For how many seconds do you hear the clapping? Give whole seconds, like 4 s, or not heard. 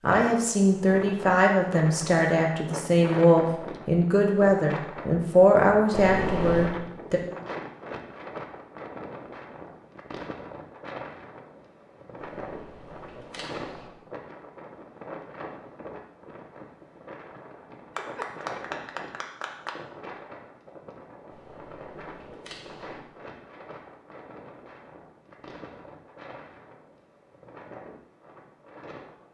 2 s.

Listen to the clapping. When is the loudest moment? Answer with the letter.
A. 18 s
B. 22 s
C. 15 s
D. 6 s
A.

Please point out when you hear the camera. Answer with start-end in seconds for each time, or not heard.
5.9-6.7, 12.2-13.9, 21.3-23.0.